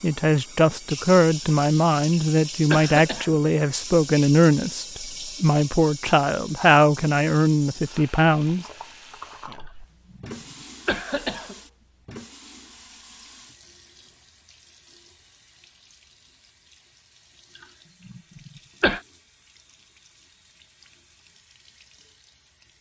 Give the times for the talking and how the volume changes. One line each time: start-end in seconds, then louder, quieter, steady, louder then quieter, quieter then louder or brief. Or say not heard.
0.0-8.7 steady.